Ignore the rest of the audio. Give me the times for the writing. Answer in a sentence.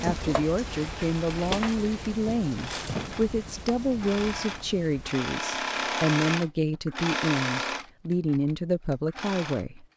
You can't hear the writing here.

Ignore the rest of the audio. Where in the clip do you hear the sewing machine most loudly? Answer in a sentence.
The volume of the sewing machine peaks at 6 seconds.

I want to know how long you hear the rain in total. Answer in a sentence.
You can hear the rain for 5 seconds altogether.